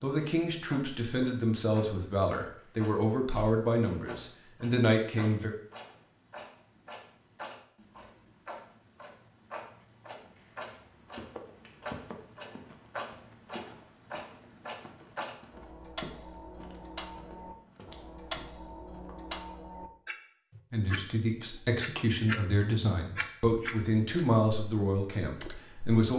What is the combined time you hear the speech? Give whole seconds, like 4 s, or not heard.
11 s.